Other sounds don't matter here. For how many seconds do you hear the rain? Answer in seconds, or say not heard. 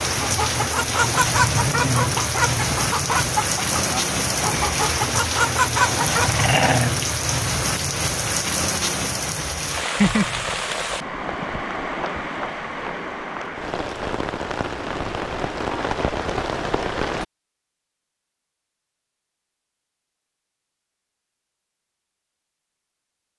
17 s.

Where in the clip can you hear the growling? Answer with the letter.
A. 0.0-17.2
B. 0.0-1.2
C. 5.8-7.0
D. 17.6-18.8
C.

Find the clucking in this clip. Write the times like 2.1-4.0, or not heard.
0.1-6.5.